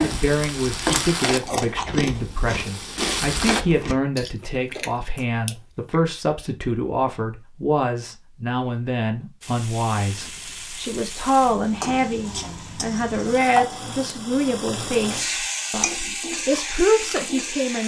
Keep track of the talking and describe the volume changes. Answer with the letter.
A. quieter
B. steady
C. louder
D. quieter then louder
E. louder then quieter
B.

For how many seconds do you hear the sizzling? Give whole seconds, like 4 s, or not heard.
12 s.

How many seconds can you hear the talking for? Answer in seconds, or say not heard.
18 s.